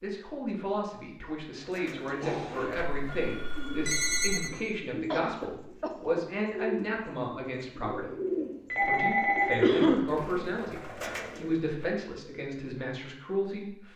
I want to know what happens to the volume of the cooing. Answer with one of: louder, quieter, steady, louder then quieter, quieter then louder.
louder.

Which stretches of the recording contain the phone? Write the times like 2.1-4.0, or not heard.
3.0-4.5, 8.7-9.6.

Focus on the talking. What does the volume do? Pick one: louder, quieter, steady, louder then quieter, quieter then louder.
steady.